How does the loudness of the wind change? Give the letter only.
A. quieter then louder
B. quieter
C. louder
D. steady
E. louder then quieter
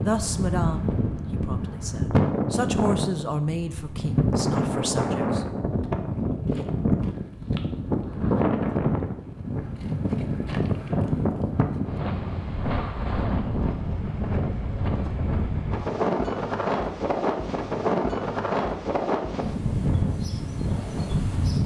D.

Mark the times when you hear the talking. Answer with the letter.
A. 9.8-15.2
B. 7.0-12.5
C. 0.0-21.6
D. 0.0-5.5
D.